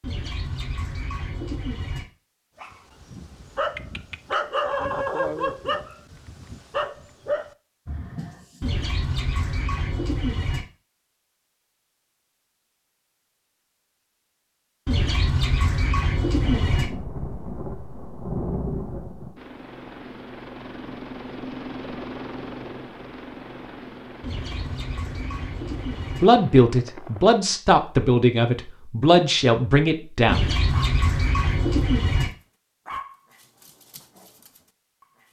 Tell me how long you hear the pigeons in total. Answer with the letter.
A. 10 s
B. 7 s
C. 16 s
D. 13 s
A.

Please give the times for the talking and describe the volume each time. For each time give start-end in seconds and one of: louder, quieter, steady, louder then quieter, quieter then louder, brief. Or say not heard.
26.2-30.4 steady.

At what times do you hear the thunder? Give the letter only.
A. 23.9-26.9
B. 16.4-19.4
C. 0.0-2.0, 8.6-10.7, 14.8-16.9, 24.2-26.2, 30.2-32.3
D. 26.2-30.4
B.